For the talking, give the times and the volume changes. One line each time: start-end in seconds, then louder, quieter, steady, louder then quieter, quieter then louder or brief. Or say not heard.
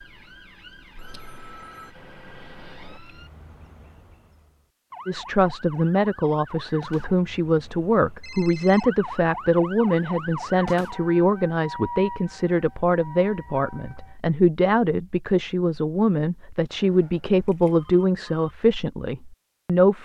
5.0-20.0 steady.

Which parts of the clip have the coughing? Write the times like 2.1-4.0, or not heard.
not heard.